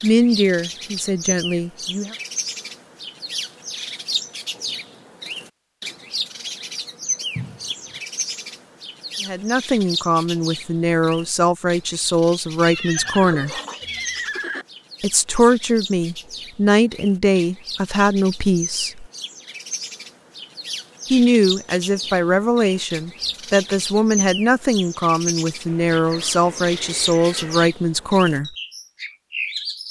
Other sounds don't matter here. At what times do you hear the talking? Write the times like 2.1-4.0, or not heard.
0.0-2.1, 9.2-13.6, 15.0-19.1, 21.1-28.6.